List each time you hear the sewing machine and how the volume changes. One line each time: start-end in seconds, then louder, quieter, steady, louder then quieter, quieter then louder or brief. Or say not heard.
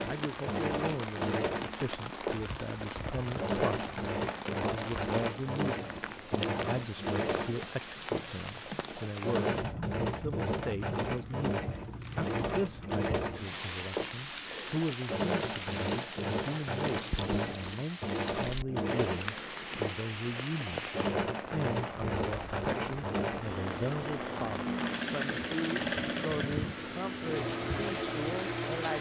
0.0-28.9 steady.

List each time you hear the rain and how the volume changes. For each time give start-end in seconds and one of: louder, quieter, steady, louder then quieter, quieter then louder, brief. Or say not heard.
0.0-28.9 steady.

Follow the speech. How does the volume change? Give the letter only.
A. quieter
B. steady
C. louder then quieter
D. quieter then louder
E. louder
B.